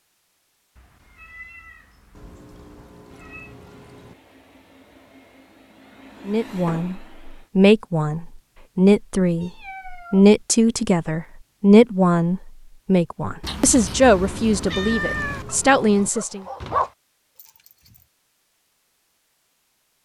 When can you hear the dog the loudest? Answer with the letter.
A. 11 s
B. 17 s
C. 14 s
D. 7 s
B.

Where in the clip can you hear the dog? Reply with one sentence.
The dog can be heard from 15.3 to 18.1 s.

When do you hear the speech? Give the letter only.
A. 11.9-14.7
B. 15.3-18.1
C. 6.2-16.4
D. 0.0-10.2
C.